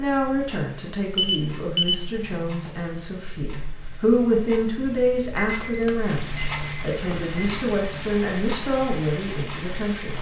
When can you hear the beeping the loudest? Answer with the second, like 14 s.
2 s.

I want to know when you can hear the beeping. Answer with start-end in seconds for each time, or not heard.
1.1-2.0, 5.3-7.5.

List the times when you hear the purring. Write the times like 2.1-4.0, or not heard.
not heard.